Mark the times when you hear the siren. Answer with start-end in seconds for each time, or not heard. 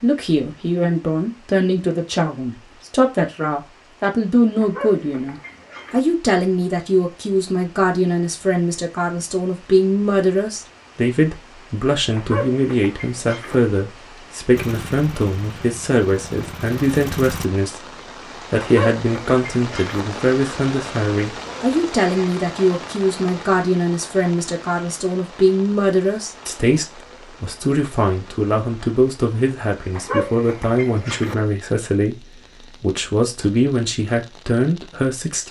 not heard.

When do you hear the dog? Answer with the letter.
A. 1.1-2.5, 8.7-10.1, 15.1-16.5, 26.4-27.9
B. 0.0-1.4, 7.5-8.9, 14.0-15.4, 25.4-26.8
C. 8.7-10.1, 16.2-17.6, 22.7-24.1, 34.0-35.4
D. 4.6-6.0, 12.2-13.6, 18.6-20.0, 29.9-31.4
D.